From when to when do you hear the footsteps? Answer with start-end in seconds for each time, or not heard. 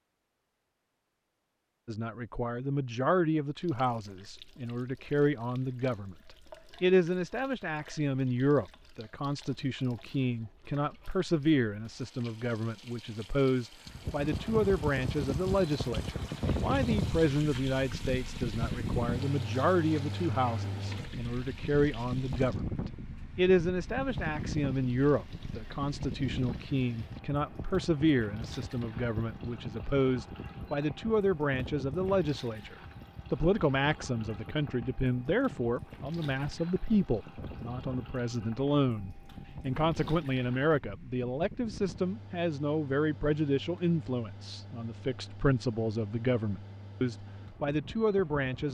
not heard.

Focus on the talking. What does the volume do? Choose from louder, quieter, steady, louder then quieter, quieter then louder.
steady.